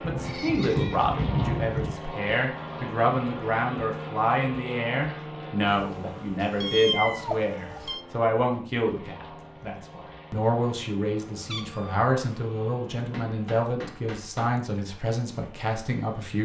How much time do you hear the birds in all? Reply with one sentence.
You can't hear the birds here.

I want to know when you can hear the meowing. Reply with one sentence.
The meowing can be heard from 0.0 to 1.9 s, from 5.7 to 8.0 s and from 11.4 to 12.1 s.